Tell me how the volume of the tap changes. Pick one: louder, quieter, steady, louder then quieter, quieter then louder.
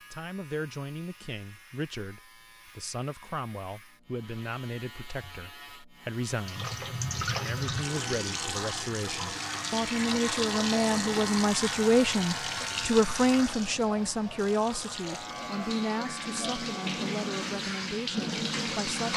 quieter then louder.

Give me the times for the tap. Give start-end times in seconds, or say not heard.
6.5-19.1.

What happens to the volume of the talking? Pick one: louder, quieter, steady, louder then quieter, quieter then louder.
louder then quieter.